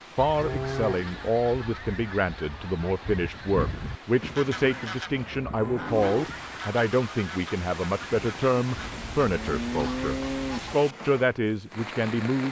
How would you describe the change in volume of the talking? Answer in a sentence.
The volume of the talking stays about the same.